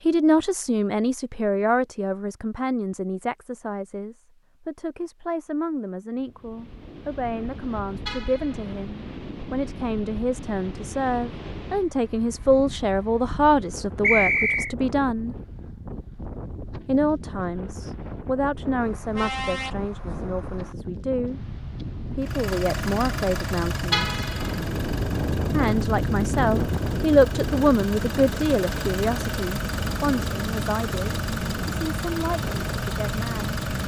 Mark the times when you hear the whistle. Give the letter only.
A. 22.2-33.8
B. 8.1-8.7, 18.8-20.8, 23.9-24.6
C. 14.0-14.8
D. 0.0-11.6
C.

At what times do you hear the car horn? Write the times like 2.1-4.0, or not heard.
8.1-8.7, 18.8-20.8, 23.9-24.6.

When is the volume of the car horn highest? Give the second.
24 s.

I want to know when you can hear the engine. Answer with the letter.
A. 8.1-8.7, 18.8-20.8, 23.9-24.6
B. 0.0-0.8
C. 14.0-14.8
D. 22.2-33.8
D.